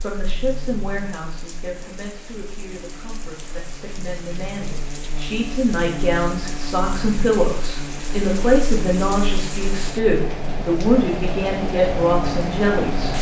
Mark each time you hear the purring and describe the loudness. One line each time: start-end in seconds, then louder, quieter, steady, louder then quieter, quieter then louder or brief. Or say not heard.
not heard.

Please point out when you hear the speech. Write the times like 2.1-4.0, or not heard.
0.0-13.1.